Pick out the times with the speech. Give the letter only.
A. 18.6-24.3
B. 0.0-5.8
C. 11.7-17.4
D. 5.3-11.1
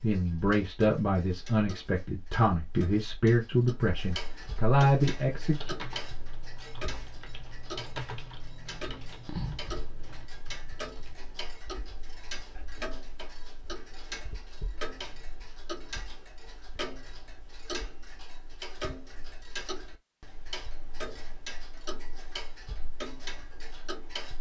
B.